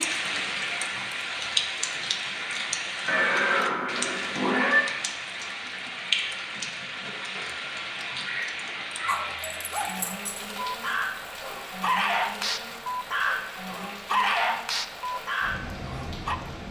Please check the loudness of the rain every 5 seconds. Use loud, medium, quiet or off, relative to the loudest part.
loud, loud, medium, medium.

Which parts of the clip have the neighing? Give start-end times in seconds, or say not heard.
3.0-5.0.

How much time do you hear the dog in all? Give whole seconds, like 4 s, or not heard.
7 s.